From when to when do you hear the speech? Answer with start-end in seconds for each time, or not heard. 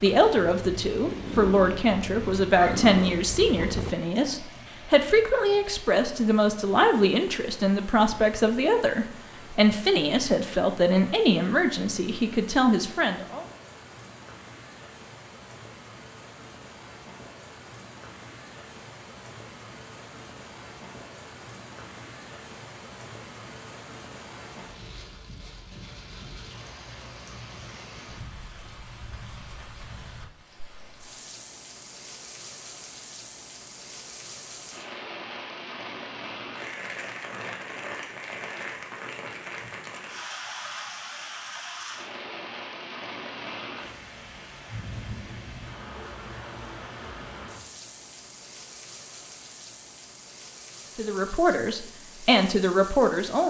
0.0-13.4, 51.0-53.4.